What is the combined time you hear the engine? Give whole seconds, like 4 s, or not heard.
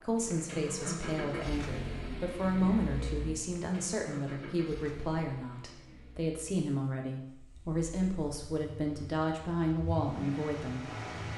11 s.